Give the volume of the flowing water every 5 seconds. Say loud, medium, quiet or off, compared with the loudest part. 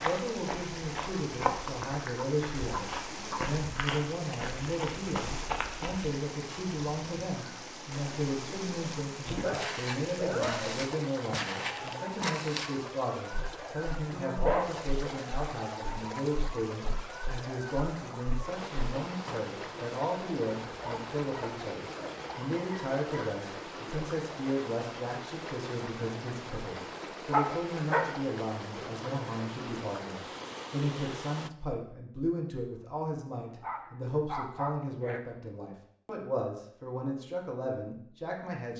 loud, loud, loud, loud, loud, loud, loud, off.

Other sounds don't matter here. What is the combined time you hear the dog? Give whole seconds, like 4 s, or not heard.
9 s.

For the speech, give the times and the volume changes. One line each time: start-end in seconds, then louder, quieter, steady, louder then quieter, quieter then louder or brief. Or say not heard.
0.0-38.7 steady.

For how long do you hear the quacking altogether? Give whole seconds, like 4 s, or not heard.
not heard.